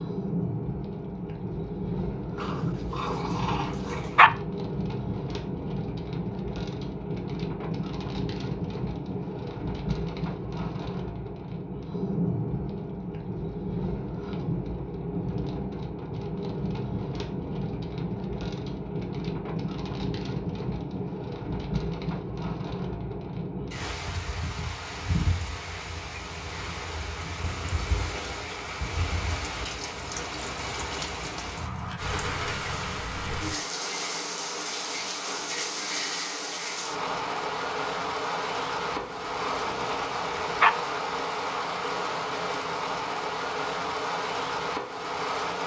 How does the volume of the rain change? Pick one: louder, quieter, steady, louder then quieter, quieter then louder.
steady.